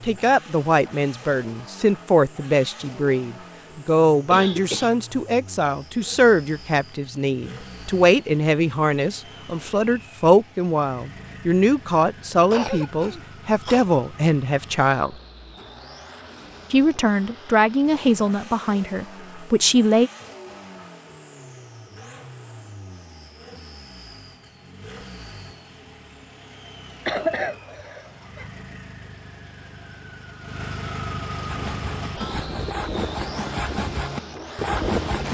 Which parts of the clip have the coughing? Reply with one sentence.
The coughing can be heard from 3.9 to 5.0 s, from 12.5 to 13.9 s and from 27.1 to 28.5 s.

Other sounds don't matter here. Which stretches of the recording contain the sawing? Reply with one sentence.
You can hear the sawing from 31.4 to 35.2 s.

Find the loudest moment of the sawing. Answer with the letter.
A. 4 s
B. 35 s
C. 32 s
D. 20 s
B.